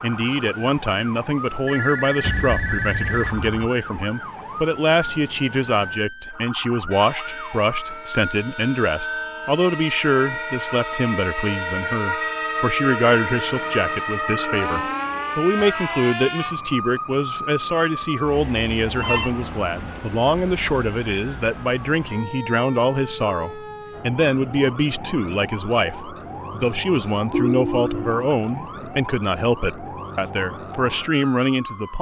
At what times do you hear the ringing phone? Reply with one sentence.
You can hear the ringing phone from 1.6 to 3.7 s, from 18.0 to 19.3 s and from 27.3 to 28.1 s.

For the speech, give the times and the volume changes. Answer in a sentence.
The speech can be heard from 0.0 to 31.9 s, at a steady volume.